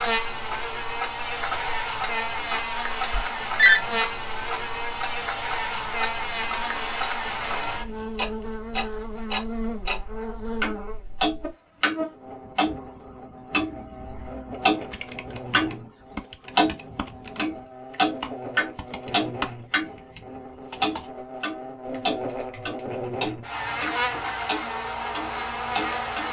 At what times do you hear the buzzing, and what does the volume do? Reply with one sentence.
The buzzing can be heard from 0.0 to 26.2 s, getting quieter then louder.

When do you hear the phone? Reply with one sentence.
You can hear the phone from 3.1 to 3.8 s.